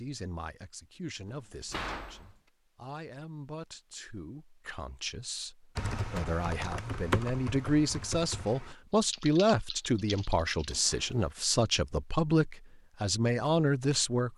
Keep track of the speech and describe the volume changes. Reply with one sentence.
The loudness of the speech goes up.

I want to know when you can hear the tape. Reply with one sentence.
You can't hear the tape here.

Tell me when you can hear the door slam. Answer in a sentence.
You can hear the door slam from 1.2 to 2.4 s, from 6.0 to 6.4 s and from 10.7 to 11.3 s.